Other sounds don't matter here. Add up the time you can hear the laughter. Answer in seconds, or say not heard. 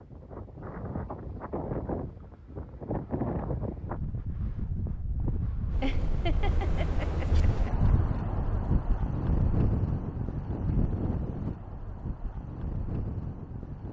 2 s.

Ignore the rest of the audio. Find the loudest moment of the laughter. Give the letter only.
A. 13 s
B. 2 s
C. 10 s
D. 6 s
D.